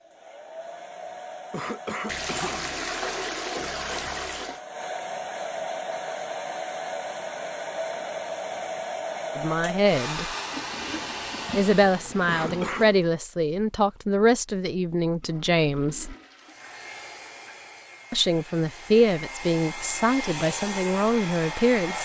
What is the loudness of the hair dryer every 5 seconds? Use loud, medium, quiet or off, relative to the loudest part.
medium, loud, loud, medium, loud.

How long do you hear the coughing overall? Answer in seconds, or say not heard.
2 s.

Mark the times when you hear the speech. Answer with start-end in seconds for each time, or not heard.
9.3-10.3, 11.5-16.1, 18.1-21.9.